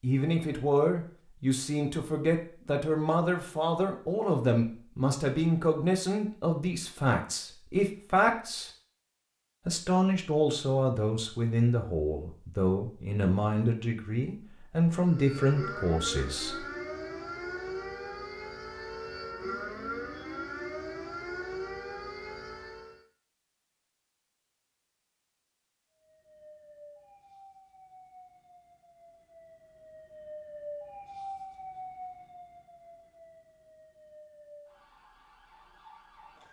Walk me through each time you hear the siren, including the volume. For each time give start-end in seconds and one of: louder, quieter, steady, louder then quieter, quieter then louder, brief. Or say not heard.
15.0-23.0 steady
26.1-36.4 louder then quieter.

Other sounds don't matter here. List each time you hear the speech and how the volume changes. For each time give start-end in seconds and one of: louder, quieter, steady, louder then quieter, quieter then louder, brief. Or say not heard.
0.0-8.7 steady
9.7-16.6 steady.